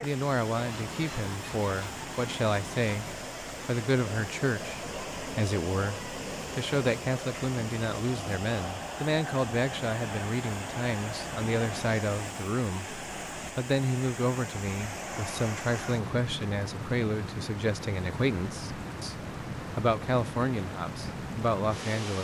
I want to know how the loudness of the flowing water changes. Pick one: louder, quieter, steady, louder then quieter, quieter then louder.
steady.